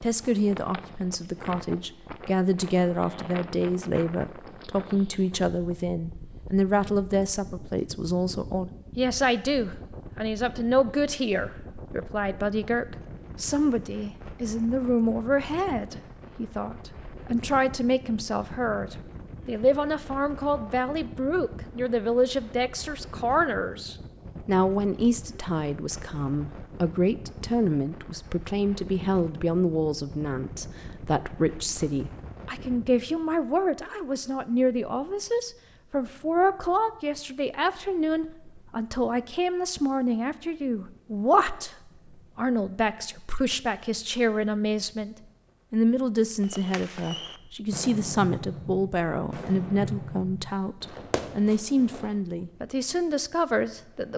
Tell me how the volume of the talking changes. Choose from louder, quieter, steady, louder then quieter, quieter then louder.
steady.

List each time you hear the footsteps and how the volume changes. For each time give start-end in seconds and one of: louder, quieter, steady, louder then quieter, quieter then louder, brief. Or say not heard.
not heard.